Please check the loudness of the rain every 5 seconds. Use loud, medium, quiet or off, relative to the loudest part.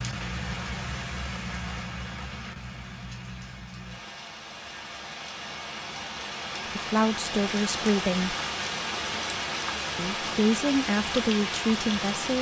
medium, loud, loud.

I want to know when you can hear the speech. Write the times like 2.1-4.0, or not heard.
6.7-8.3, 9.9-12.3.